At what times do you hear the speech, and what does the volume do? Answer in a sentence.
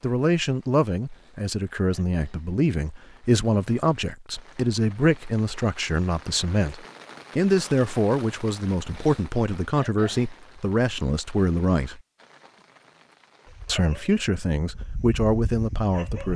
You can hear the speech from 0.0 to 12.0 s, at a steady volume; and briefly from 13.7 to 16.3 s.